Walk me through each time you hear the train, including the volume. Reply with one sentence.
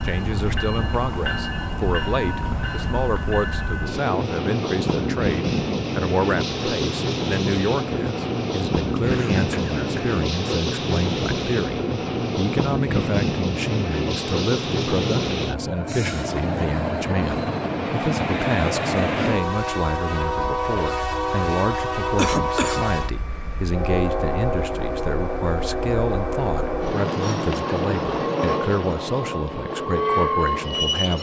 The train can be heard from 0.0 to 31.1 s, at a steady volume.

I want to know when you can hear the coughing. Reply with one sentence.
The coughing can be heard from 9.1 to 10.2 s and from 21.4 to 22.9 s.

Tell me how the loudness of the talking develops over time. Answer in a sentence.
The volume of the talking stays about the same.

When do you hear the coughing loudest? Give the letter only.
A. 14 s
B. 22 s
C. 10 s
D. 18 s
B.